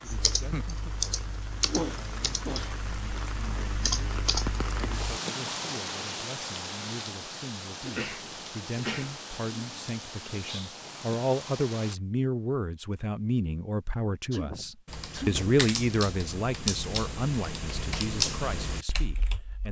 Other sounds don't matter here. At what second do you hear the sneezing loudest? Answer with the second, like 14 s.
2 s.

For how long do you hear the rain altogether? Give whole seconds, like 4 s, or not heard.
12 s.